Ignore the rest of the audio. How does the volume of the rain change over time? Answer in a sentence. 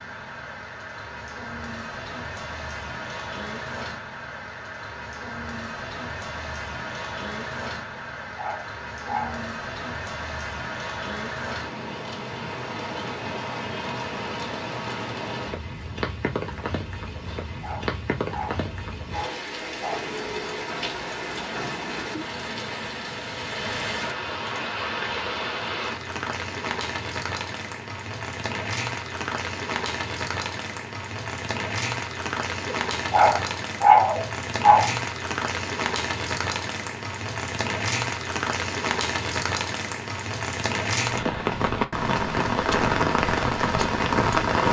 The loudness of the rain goes up.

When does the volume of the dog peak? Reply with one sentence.
The loudest moment of the dog is at 34 seconds.